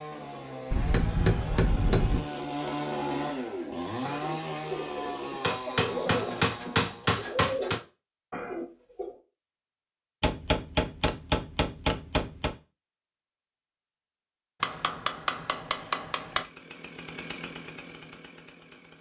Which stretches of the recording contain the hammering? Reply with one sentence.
The hammering can be heard from 0.7 to 2.2 s, from 5.4 to 7.8 s, from 10.2 to 12.6 s and from 14.6 to 16.4 s.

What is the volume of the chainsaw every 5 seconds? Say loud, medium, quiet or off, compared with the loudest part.
loud, loud, off, medium.